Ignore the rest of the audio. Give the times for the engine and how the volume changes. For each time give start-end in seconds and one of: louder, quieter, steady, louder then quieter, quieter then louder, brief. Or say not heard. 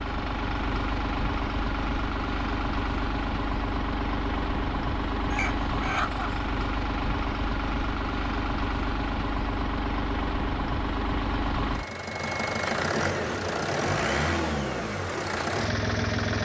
0.0-16.3 steady.